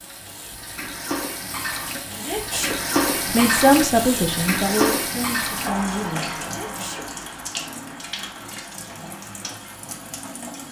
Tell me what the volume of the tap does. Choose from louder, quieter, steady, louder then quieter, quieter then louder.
louder then quieter.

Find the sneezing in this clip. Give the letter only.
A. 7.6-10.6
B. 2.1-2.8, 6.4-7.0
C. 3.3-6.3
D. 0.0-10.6
B.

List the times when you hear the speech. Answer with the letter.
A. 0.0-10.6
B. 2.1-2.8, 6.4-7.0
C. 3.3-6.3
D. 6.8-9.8
C.